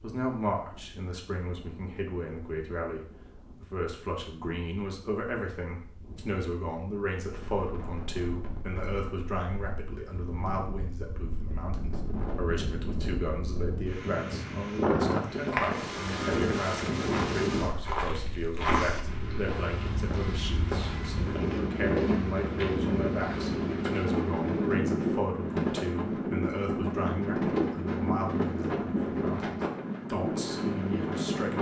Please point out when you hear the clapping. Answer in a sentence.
You can't hear the clapping here.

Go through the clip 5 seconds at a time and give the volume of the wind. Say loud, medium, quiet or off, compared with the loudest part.
quiet, quiet, medium, loud, loud, loud, loud.